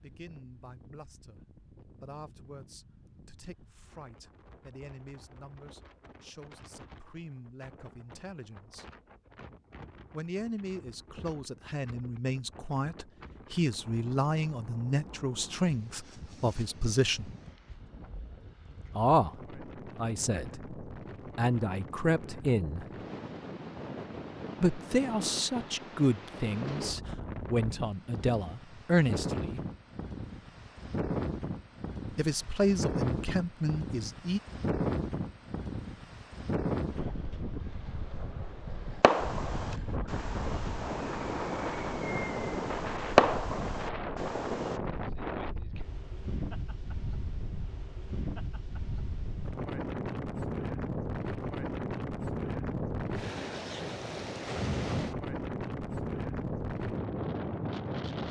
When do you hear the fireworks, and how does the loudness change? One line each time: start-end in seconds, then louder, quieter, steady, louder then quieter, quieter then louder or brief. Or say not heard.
39.0-44.8 louder then quieter.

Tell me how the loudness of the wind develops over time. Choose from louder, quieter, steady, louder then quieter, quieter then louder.
louder.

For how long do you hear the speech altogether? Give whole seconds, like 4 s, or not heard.
27 s.